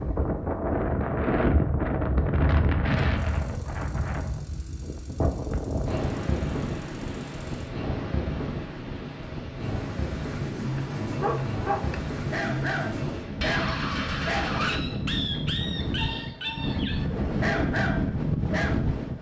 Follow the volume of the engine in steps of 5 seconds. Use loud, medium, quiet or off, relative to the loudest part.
quiet, quiet, loud, off.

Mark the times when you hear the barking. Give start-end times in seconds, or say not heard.
10.6-18.9.